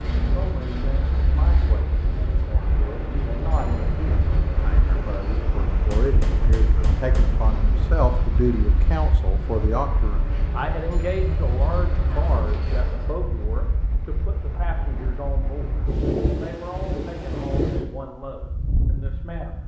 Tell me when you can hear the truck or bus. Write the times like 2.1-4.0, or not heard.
0.0-13.2.